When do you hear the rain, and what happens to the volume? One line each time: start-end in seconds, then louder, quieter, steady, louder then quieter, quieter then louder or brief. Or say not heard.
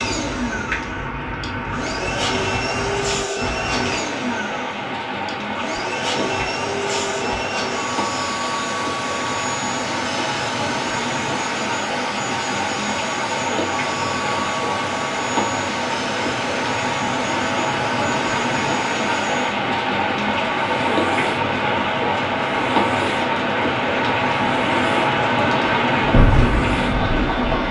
0.0-27.6 louder.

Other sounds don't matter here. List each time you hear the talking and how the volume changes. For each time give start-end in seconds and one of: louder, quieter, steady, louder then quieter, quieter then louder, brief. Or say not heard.
not heard.